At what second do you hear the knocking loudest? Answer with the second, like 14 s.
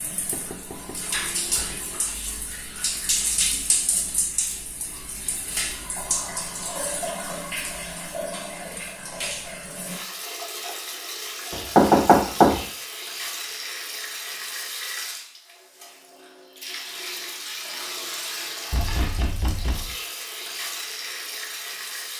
12 s.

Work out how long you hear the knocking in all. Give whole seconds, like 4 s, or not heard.
4 s.